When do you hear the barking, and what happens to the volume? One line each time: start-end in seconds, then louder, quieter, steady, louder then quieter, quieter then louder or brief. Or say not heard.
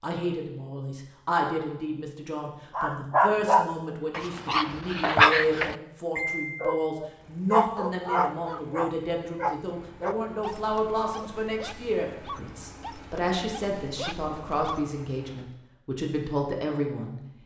2.8-14.8 quieter.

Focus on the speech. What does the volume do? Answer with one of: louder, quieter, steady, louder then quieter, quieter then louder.
steady.